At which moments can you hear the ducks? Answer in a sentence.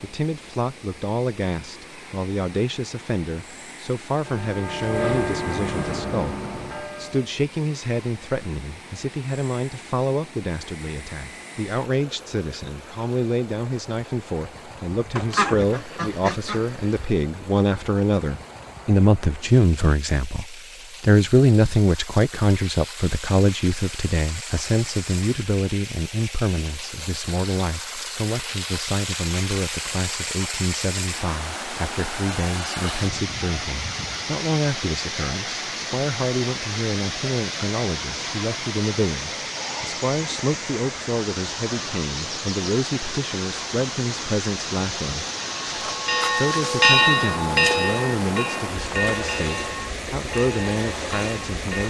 The ducks can be heard from 15.2 to 17.1 s.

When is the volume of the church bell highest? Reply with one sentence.
The volume of the church bell peaks at 47 seconds.